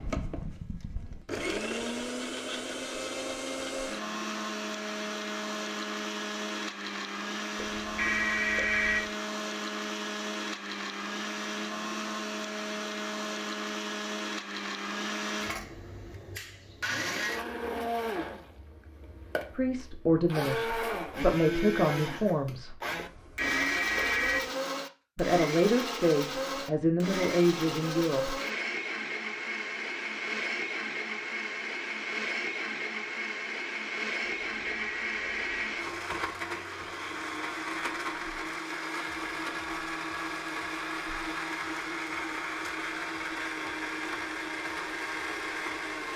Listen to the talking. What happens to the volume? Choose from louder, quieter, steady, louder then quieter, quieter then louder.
steady.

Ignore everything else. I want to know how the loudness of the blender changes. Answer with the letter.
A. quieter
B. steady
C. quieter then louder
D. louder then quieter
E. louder
B.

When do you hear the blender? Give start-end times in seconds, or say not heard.
0.0-46.1.